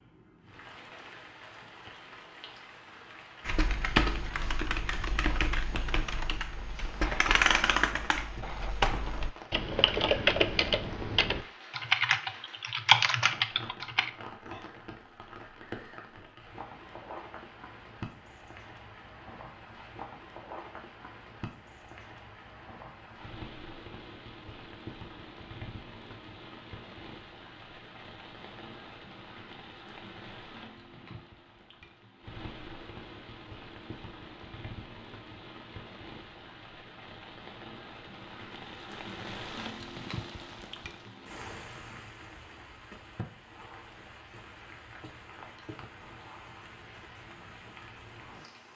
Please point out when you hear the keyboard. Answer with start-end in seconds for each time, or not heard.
3.5-14.1.